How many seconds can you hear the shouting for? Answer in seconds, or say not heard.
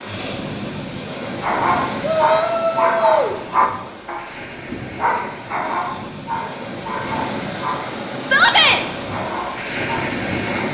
2 s.